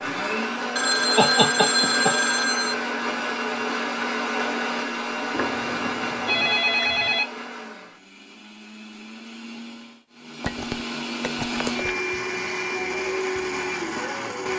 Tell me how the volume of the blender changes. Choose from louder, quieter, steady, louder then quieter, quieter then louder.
quieter then louder.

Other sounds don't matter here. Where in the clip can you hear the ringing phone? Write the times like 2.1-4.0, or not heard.
0.8-2.8, 5.3-7.2, 10.4-11.9.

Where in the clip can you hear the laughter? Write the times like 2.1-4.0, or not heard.
1.1-2.1.